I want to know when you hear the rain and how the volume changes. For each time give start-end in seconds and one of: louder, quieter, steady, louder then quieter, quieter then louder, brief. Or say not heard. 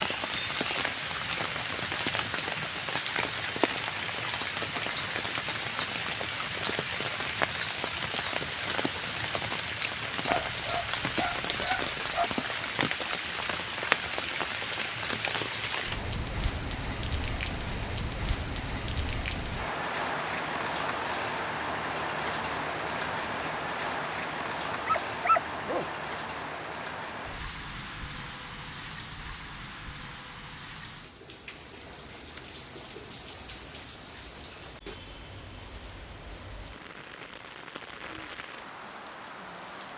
0.0-39.9 quieter.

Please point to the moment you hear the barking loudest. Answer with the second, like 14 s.
25 s.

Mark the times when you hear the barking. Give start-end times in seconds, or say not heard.
10.2-12.3, 24.7-25.9.